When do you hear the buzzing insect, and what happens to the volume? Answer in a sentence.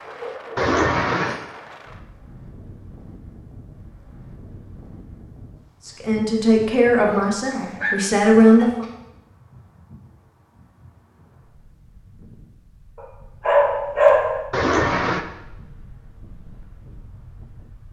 You can't hear the buzzing insect here.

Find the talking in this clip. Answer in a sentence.
The talking can be heard from 5.8 to 8.8 s.